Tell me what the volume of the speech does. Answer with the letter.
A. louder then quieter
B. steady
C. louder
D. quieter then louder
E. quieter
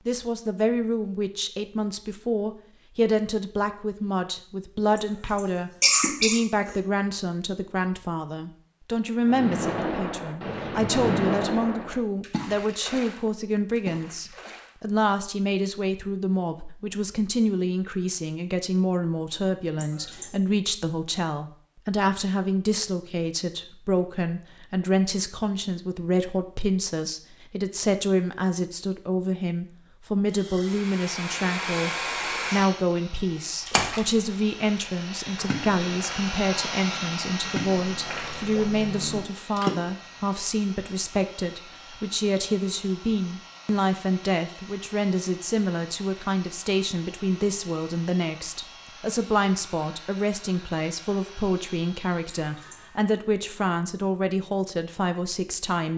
B.